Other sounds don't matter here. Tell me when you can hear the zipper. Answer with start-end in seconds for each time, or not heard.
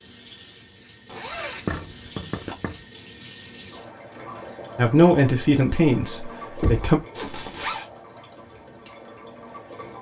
1.1-2.5, 7.2-7.9.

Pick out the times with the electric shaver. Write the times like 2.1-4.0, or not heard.
not heard.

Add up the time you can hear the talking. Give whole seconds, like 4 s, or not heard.
2 s.